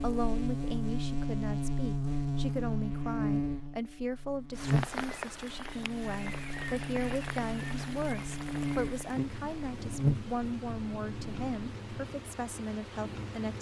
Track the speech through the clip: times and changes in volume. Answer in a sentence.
The speech can be heard from 0.0 to 13.5 s, at a steady volume.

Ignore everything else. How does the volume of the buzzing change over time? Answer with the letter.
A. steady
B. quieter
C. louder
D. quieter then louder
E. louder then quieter
D.